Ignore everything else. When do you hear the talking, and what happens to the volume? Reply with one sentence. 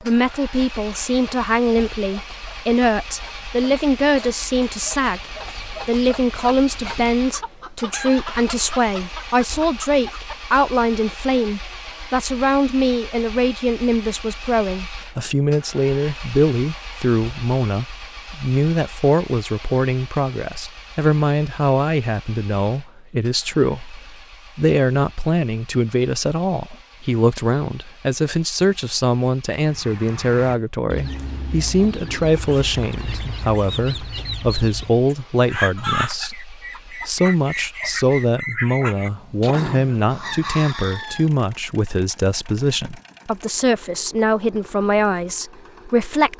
You can hear the talking from 0.0 to 46.3 s, at a steady volume.